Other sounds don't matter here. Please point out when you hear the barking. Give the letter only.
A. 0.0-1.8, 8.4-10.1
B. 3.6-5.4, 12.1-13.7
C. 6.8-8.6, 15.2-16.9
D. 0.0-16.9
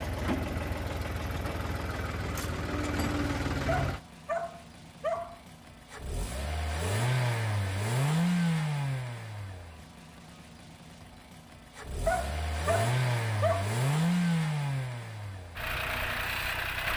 B.